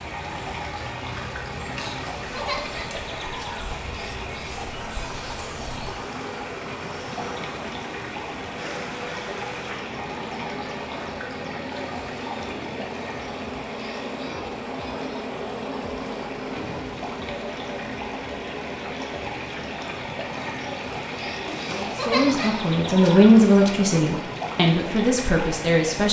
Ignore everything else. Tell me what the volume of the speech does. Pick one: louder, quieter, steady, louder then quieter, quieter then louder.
louder then quieter.